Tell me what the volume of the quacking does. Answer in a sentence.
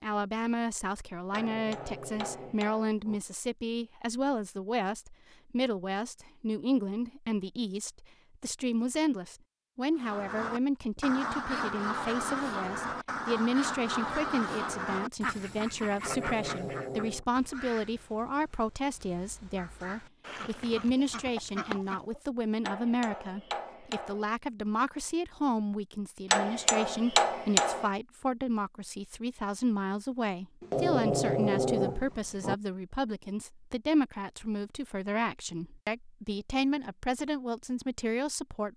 The volume of the quacking goes down, then up.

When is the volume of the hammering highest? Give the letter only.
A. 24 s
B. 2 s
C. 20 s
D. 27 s
D.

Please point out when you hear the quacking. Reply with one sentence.
You can hear the quacking from 9.9 to 22.2 s.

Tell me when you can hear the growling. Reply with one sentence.
You can hear the growling from 1.2 to 3.2 s, from 15.9 to 17.2 s and from 30.6 to 32.5 s.